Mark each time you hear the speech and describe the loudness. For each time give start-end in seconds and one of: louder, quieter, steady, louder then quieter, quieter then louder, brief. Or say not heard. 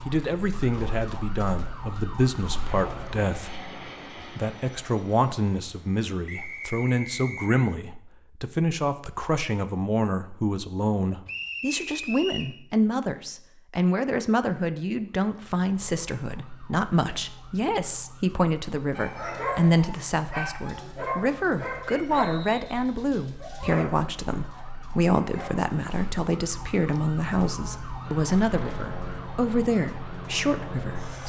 0.1-31.1 steady.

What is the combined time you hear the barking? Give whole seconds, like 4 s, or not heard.
7 s.